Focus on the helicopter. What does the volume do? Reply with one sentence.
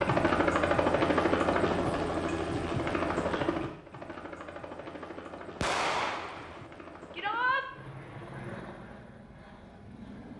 The volume of the helicopter goes down.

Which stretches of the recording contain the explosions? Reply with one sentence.
You can hear the explosions from 5.6 to 6.7 s.